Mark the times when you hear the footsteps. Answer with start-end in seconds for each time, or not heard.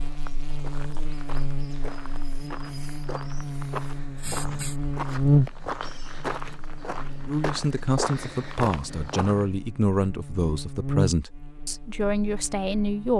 0.0-9.4.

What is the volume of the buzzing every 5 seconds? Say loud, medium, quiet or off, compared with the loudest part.
medium, loud, medium.